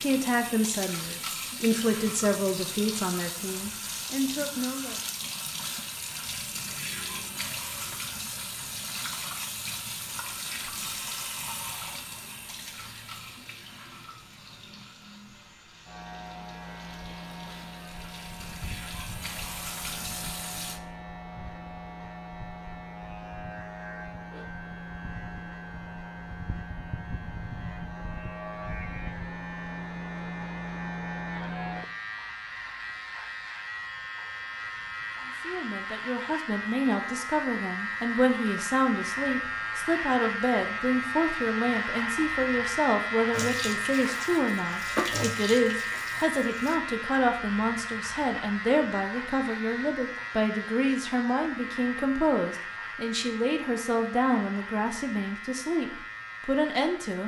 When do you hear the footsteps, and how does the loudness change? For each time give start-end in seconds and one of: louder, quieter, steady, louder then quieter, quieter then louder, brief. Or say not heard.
not heard.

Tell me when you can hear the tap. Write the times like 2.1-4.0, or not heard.
0.0-20.8, 43.3-46.8.